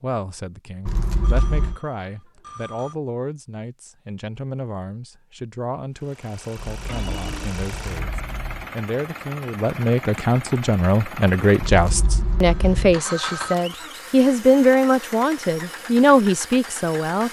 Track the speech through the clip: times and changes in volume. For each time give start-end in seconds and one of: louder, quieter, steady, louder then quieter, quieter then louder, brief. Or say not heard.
0.0-17.2 louder.